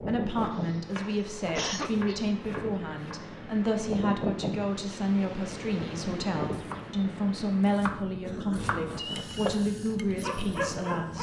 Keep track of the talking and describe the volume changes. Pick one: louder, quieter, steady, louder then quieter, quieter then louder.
steady.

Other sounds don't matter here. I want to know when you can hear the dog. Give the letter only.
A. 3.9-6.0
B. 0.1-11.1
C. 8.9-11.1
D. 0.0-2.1
C.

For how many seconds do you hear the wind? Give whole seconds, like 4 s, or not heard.
11 s.